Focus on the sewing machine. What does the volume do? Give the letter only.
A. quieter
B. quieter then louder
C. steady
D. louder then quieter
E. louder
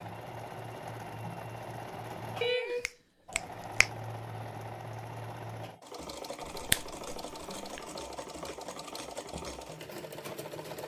C.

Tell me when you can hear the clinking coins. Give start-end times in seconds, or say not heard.
not heard.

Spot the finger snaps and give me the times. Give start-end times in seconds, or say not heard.
2.4-3.9, 6.4-7.8.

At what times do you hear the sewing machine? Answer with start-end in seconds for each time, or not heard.
0.0-10.8.